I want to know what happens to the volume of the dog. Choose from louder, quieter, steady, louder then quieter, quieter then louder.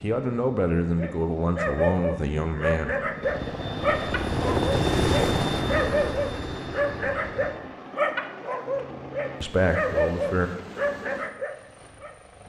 steady.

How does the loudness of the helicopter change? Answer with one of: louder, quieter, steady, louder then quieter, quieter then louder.
louder then quieter.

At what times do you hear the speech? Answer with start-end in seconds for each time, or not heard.
0.0-3.1, 9.4-10.5.